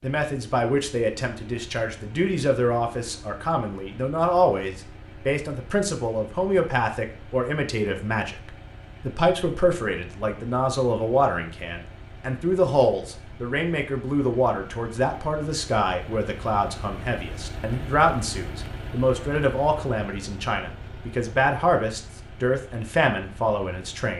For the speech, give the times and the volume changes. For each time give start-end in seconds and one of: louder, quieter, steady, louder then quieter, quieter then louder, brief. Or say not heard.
0.0-24.1 steady.